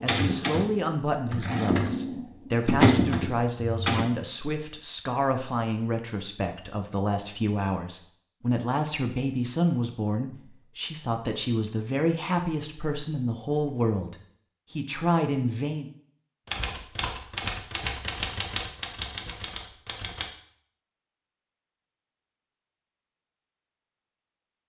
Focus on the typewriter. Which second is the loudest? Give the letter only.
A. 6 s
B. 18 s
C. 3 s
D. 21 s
C.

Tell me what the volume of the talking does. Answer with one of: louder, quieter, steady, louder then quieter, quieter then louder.
steady.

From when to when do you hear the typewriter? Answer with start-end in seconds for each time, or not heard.
0.0-4.0, 16.4-20.3.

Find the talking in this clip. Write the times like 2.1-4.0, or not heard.
0.0-15.9.